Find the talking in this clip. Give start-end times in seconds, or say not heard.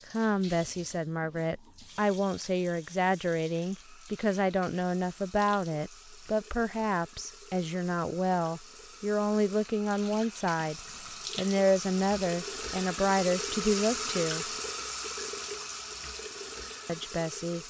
0.1-14.5, 16.9-17.6.